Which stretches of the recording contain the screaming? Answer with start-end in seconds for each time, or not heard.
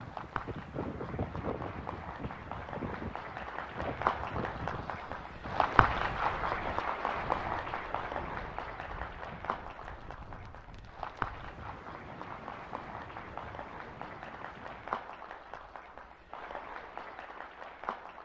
not heard.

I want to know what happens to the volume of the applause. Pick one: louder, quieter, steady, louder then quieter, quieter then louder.
louder then quieter.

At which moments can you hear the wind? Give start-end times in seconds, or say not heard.
0.0-15.1.